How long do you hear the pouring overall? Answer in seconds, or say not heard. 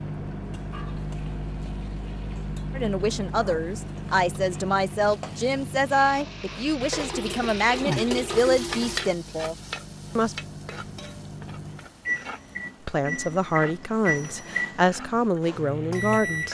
2 s.